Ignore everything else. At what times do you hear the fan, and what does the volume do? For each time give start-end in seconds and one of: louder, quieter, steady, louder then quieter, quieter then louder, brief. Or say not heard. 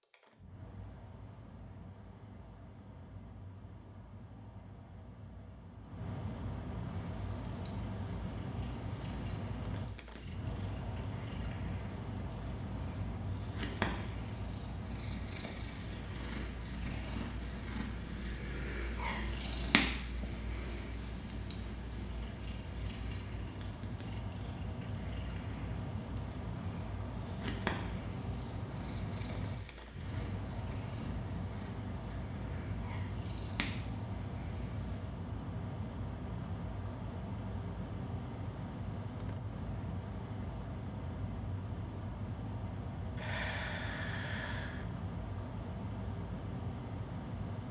0.0-47.6 steady.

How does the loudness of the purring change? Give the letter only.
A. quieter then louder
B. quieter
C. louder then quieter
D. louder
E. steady
C.